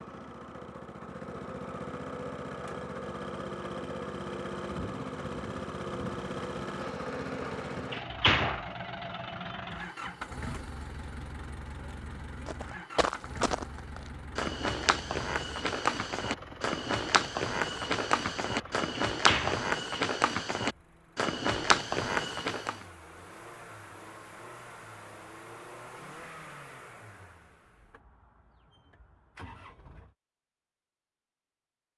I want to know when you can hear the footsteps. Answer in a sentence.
You can hear the footsteps from 12.4 to 22.9 s.